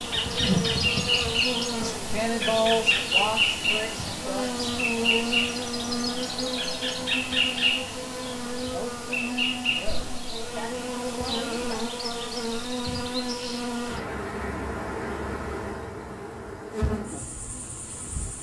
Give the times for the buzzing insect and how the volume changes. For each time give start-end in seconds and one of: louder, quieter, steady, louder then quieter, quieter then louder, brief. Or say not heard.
0.0-18.3 quieter.